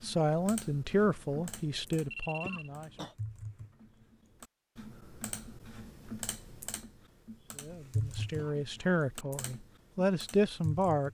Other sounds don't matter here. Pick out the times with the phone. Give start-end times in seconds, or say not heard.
2.1-2.7.